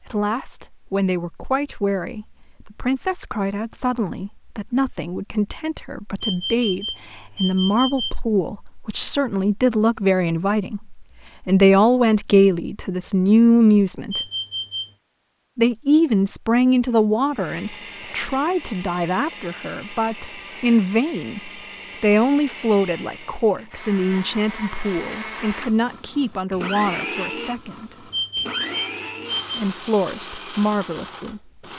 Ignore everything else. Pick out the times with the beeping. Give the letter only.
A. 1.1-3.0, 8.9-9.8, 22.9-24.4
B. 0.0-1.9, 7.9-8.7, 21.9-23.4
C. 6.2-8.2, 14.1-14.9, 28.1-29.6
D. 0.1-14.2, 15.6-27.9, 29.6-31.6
C.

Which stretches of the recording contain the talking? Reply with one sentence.
You can hear the talking from 0.1 to 14.2 s, from 15.6 to 27.9 s and from 29.6 to 31.6 s.